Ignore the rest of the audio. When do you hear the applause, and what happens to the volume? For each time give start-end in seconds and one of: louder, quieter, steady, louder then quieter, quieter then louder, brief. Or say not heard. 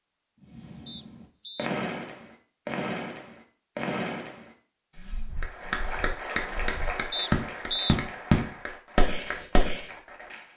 5.4-10.5 quieter.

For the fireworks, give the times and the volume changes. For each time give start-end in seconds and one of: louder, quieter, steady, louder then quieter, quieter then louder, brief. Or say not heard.
0.4-9.9 quieter then louder.